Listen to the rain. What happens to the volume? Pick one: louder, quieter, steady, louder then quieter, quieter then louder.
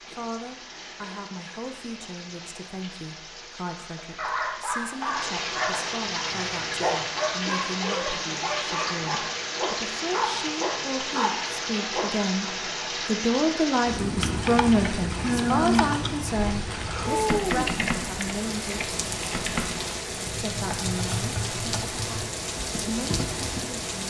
louder.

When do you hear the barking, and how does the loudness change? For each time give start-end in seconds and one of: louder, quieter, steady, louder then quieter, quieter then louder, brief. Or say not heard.
4.0-12.1 steady.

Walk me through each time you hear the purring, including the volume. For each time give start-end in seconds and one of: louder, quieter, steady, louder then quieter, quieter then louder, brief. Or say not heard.
not heard.